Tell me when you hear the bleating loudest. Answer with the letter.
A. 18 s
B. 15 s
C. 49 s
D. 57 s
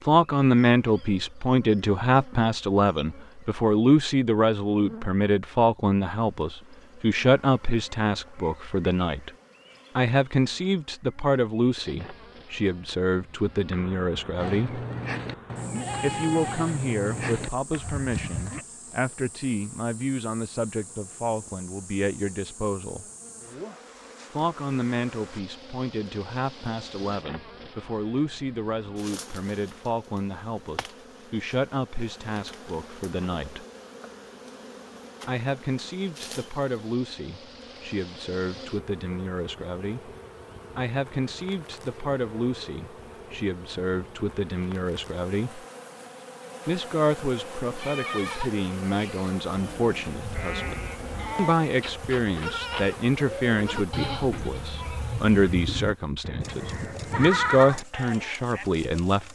D.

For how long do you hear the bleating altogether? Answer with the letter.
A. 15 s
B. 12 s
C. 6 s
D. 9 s
A.